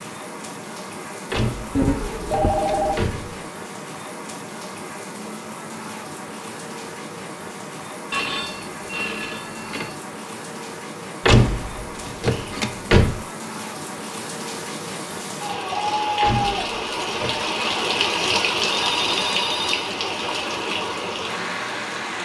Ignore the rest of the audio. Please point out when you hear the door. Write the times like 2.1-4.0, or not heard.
1.3-3.4, 11.2-13.2, 16.2-17.4.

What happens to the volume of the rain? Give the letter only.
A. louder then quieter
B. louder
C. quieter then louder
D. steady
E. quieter
B.